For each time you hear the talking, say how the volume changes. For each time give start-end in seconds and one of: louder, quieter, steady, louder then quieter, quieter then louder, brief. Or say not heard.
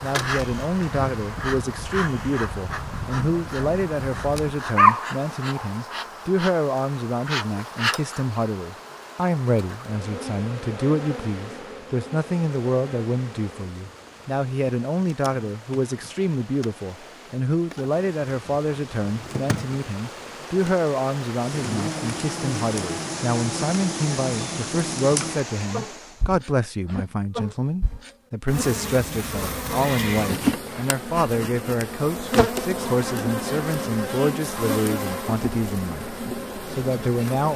0.0-37.5 steady.